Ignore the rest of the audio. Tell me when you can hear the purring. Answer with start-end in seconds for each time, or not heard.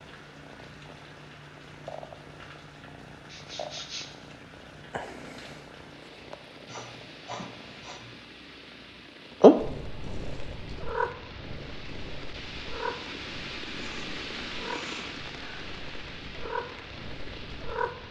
0.1-7.8, 9.3-18.0.